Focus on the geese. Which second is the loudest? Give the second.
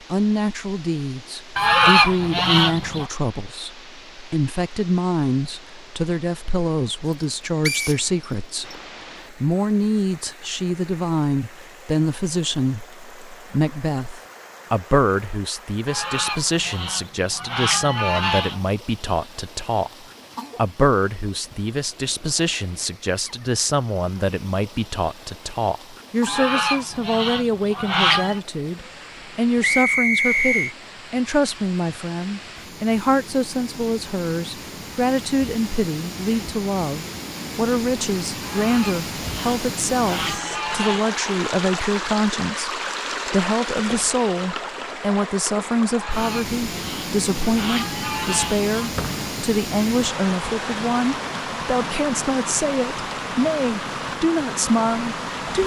2 s.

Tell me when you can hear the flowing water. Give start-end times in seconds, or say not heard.
0.0-55.6.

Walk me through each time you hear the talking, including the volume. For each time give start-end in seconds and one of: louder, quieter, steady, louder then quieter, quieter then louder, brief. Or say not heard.
0.1-19.9 steady
20.6-55.6 steady.